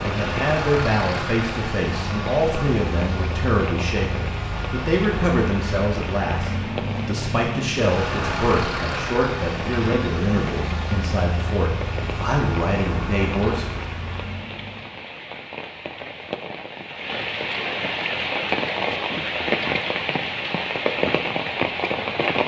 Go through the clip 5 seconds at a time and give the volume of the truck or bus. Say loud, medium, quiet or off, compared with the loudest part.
loud, loud, loud, off, off.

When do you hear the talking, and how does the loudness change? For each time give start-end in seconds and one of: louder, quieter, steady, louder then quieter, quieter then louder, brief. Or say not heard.
0.0-13.8 steady.